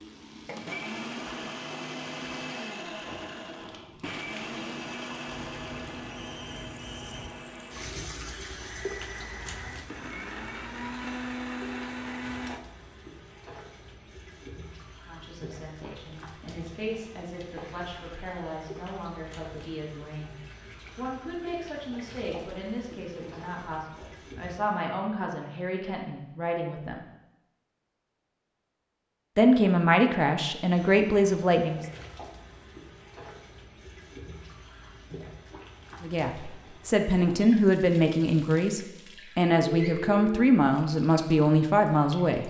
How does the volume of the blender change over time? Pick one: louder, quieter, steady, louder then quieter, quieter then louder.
quieter then louder.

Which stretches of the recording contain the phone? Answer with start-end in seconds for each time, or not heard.
5.5-7.3, 39.8-40.5.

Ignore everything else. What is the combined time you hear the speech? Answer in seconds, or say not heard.
20 s.